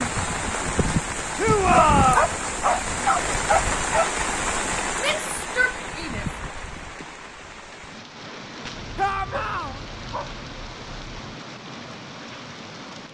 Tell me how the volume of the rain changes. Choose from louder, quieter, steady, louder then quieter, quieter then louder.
quieter.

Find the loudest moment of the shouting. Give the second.
2 s.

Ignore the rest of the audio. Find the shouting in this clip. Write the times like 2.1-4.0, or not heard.
1.4-2.2, 5.0-6.2, 8.9-9.8.